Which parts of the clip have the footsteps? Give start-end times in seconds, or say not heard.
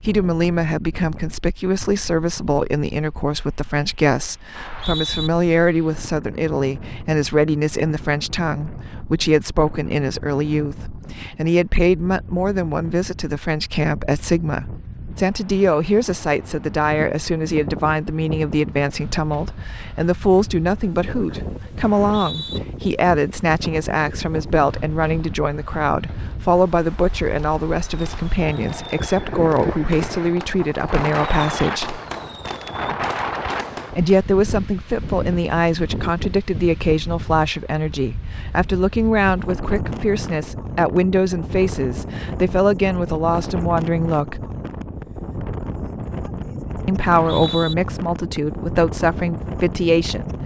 not heard.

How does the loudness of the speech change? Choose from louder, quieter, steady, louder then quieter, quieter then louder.
steady.